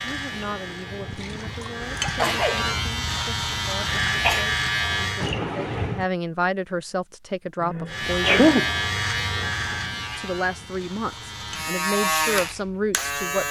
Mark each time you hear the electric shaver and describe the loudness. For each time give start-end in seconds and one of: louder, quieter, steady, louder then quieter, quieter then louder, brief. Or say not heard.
0.0-5.3 louder
7.8-13.4 quieter then louder.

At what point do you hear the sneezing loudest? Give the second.
8 s.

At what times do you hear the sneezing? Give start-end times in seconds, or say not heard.
2.0-3.0, 4.0-4.5, 7.6-8.7.